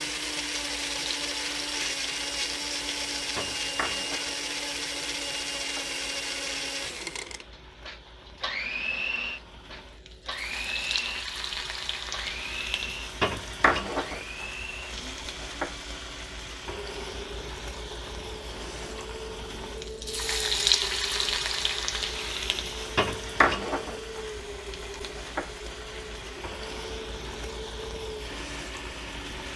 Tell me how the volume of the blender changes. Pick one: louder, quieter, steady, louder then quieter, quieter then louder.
quieter.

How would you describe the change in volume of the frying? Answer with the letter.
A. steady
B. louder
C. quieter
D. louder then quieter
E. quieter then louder
D.